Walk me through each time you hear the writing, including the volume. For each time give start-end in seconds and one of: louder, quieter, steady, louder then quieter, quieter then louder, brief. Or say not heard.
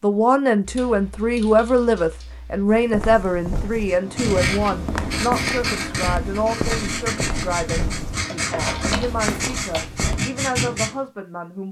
3.9-10.9 steady.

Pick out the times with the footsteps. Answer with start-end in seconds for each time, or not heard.
2.6-10.2.